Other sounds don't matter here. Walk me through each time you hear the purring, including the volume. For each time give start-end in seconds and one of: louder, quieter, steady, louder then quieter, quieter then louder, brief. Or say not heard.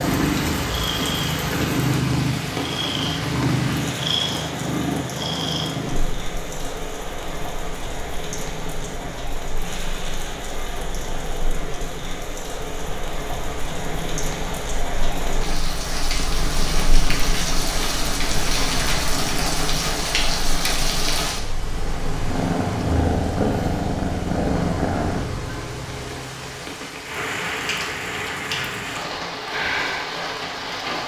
0.0-25.2 quieter then louder.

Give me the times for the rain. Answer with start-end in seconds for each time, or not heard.
0.0-31.0.